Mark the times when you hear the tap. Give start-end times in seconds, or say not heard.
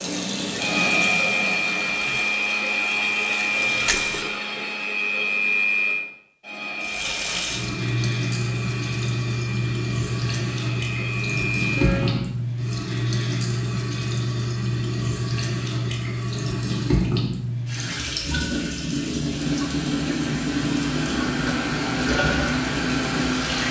0.0-4.3, 6.8-23.6.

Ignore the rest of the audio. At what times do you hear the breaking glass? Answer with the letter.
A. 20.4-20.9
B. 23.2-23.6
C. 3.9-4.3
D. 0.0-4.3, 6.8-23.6
C.